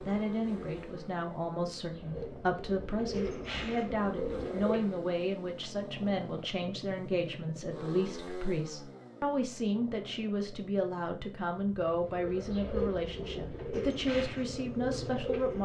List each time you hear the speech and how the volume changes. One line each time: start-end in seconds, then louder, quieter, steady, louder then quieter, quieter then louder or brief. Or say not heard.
0.0-15.6 steady.